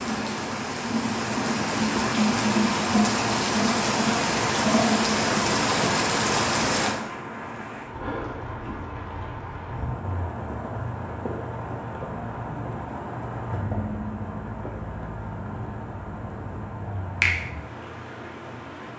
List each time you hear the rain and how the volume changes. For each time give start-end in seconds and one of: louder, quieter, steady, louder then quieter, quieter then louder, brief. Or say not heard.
0.0-18.9 quieter.